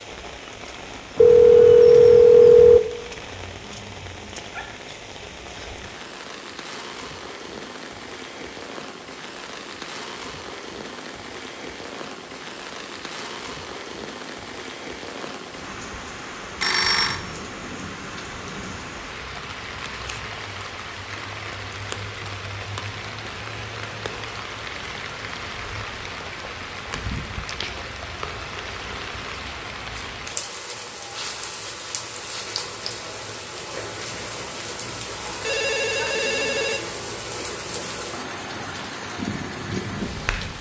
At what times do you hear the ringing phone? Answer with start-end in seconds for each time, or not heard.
1.1-2.8, 16.6-17.2, 35.4-37.5.